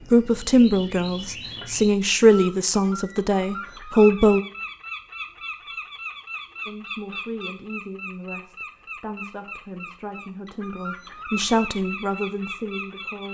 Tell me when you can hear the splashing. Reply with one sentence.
You can't hear the splashing here.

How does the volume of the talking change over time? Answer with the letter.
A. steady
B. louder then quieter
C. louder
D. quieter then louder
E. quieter
D.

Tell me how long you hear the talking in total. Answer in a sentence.
The talking can be heard for 11 seconds in total.